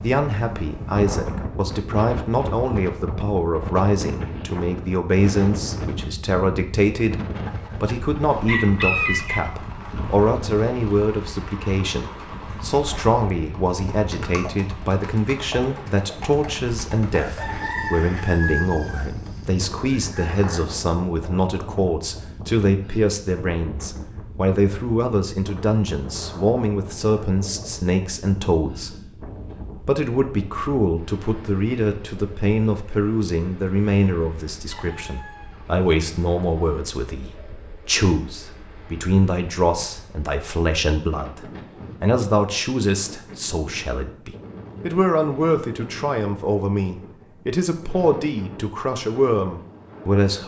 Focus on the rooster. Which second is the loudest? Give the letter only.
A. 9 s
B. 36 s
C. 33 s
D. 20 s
A.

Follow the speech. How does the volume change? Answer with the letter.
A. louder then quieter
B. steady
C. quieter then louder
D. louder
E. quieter
B.